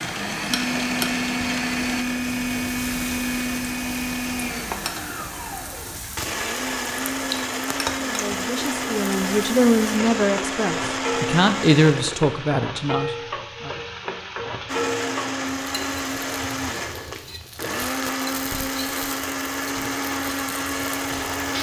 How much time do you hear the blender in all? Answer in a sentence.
The blender can be heard for 19 seconds in total.